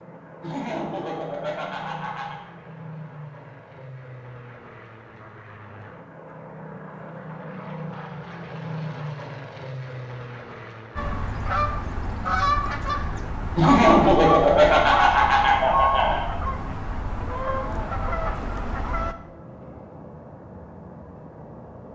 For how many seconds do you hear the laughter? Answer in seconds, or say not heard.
5 s.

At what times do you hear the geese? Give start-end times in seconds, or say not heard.
10.9-19.1.